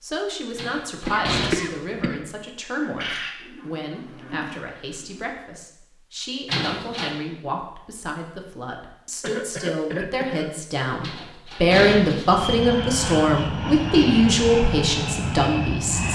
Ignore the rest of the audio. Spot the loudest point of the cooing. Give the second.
3 s.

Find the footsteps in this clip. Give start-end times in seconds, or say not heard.
not heard.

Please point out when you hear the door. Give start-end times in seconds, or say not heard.
0.6-1.6, 6.5-7.2, 11.0-12.4.